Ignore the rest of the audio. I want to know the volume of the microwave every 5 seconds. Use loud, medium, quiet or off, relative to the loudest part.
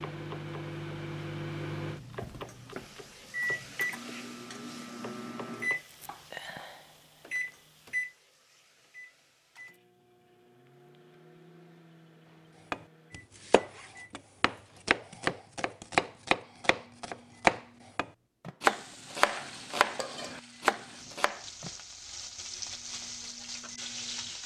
loud, loud, quiet, quiet, quiet.